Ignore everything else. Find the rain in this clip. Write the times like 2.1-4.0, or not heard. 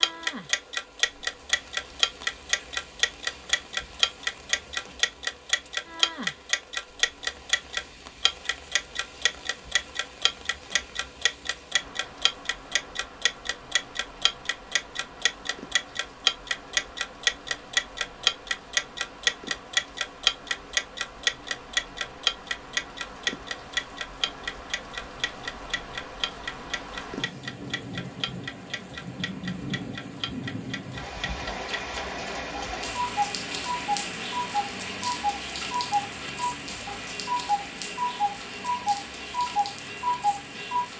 0.0-40.9.